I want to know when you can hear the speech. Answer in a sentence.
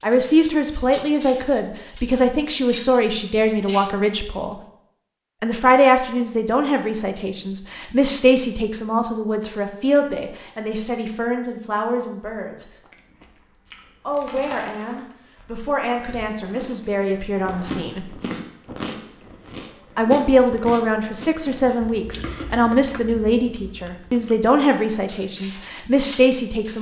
The speech can be heard from 0.0 to 4.5 s, from 5.4 to 12.7 s, from 14.1 to 18.1 s and from 19.9 to 26.7 s.